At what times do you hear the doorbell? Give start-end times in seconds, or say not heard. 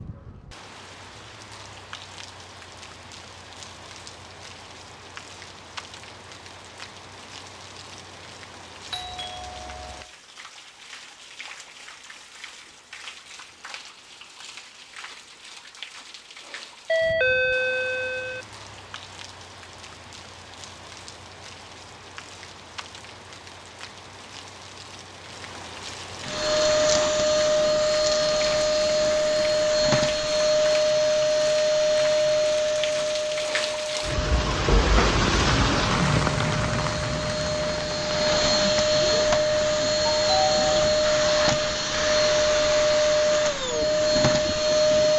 8.9-10.1, 16.9-18.4, 40.1-40.7.